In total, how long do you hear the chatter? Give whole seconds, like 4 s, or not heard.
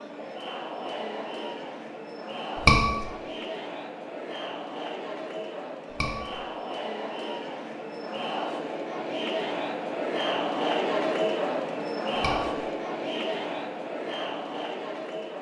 15 s.